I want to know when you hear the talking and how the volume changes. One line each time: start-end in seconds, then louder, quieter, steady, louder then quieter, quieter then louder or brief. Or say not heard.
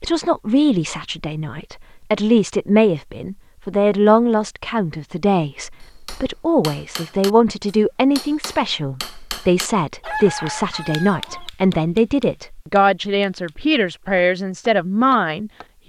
0.0-15.8 steady.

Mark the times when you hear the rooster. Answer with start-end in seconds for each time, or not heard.
10.0-11.5.